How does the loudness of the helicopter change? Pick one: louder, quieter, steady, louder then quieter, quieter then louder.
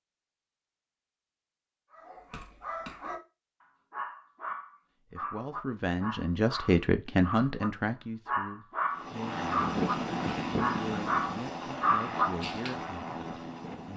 quieter.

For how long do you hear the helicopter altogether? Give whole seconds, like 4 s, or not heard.
5 s.